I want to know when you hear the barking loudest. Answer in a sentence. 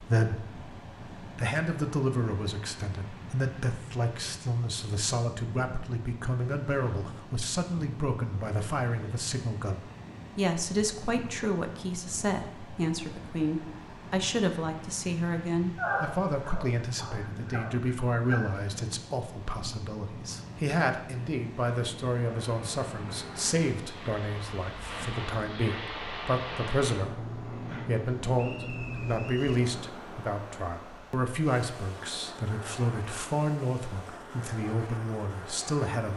The volume of the barking peaks at 16 seconds.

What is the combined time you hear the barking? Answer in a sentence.
You can hear the barking for 3 seconds altogether.